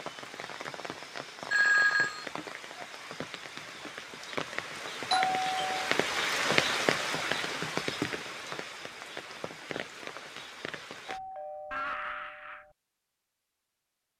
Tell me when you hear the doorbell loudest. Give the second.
2 s.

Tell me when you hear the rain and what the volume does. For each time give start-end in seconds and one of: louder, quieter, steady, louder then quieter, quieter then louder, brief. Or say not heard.
0.0-11.2 louder then quieter.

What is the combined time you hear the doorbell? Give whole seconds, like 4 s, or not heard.
3 s.